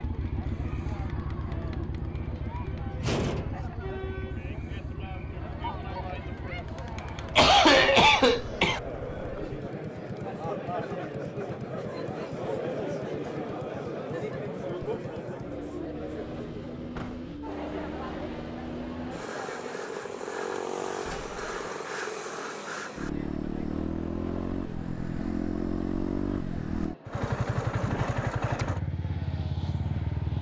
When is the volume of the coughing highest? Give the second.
8 s.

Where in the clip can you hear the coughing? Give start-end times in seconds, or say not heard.
7.3-8.8, 27.9-28.8.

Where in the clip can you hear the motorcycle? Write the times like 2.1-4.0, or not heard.
0.0-30.3.